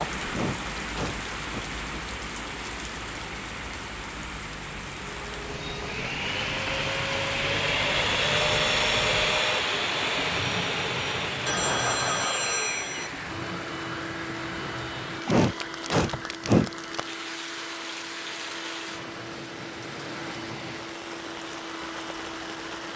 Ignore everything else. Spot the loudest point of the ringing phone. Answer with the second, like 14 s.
12 s.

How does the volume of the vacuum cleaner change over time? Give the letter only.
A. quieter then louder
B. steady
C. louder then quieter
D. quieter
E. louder
D.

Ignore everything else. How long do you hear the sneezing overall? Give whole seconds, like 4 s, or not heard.
3 s.